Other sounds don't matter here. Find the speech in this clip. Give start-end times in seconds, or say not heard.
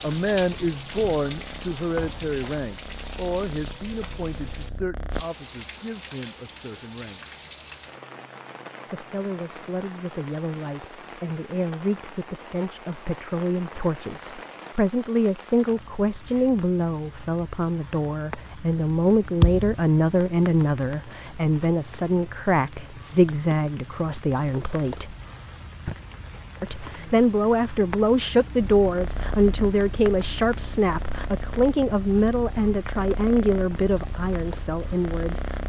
0.0-7.2, 8.9-25.1, 26.6-35.6.